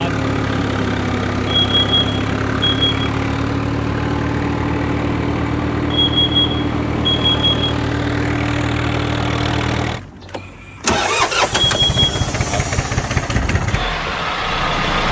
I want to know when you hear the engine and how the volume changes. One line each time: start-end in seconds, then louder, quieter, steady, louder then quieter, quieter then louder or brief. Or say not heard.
0.0-15.0 steady.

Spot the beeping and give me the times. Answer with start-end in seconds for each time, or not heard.
1.4-2.9, 5.9-7.8, 11.5-12.3.